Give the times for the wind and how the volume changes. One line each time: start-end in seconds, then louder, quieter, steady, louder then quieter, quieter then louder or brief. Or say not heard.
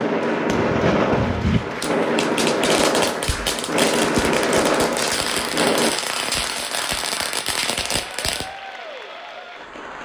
0.0-6.0 steady.